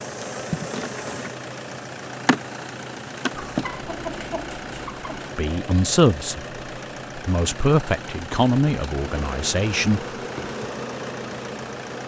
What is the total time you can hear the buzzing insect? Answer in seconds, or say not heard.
7 s.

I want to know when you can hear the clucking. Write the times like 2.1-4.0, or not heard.
3.3-5.3.